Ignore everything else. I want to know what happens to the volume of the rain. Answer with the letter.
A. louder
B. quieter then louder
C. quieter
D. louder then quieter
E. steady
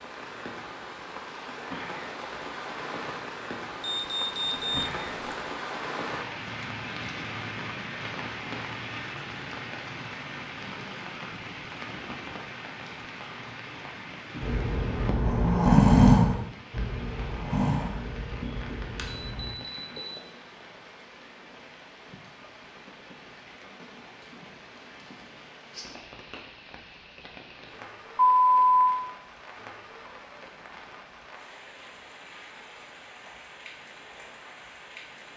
C.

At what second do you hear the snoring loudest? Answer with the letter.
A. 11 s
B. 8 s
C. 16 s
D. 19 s
C.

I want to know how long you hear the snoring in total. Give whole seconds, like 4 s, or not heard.
5 s.